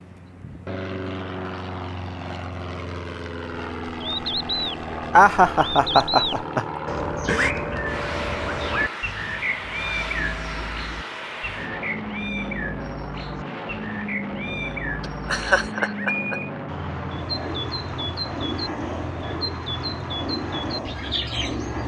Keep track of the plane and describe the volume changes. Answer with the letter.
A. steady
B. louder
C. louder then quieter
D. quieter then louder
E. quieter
A.